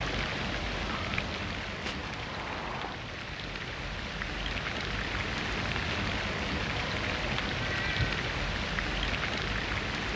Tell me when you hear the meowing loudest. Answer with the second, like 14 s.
8 s.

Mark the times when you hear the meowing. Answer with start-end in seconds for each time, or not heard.
1.8-3.1, 7.6-8.2.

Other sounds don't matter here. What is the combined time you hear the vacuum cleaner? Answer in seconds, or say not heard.
not heard.